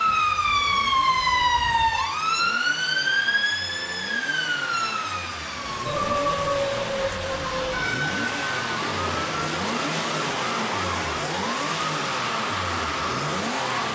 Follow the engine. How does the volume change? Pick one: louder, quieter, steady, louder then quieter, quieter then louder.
louder.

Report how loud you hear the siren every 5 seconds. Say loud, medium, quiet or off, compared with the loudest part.
loud, medium, medium.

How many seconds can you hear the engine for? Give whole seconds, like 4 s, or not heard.
14 s.